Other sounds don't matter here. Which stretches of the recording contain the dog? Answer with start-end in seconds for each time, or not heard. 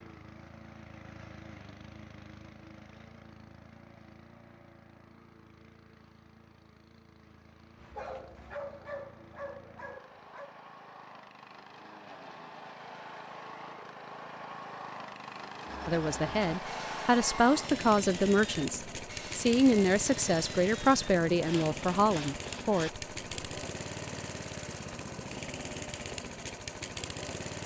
7.8-10.6.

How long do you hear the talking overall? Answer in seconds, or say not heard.
7 s.